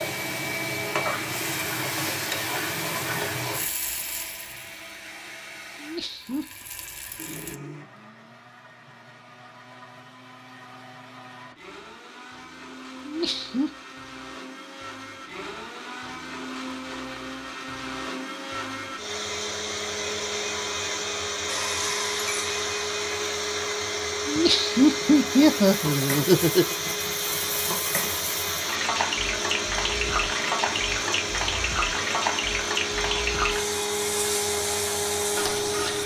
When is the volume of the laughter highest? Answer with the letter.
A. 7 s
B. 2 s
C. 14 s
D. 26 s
D.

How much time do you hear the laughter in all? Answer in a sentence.
You can hear the laughter for 4 seconds altogether.